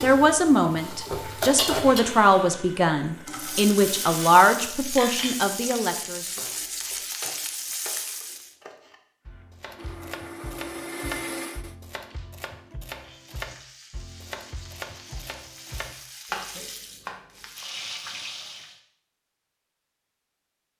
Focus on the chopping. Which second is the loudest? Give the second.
16 s.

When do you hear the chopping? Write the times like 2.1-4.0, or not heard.
6.2-17.6.